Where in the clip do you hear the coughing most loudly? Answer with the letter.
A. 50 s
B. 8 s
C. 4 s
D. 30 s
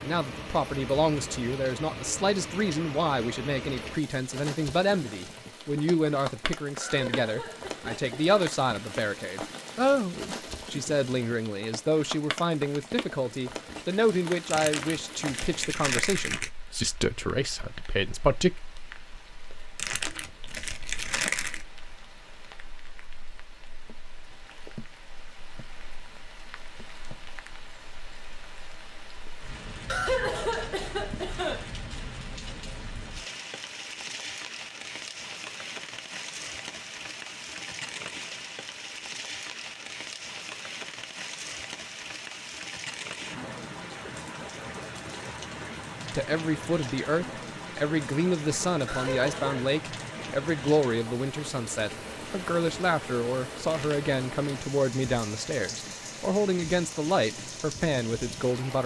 D.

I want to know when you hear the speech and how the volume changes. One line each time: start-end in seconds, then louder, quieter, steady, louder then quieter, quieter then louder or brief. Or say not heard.
0.0-18.5 steady
46.1-58.8 steady.